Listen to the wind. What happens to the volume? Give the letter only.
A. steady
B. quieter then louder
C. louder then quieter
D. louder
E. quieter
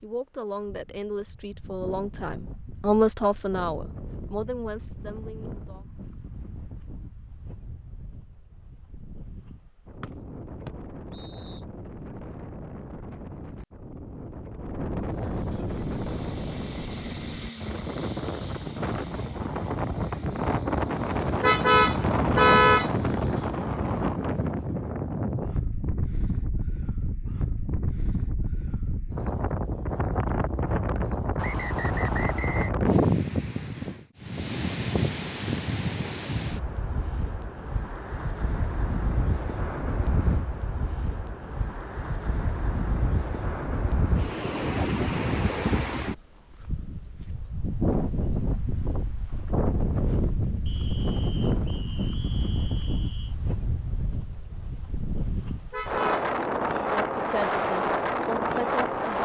D.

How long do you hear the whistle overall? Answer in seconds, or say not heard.
6 s.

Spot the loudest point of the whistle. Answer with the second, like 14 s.
32 s.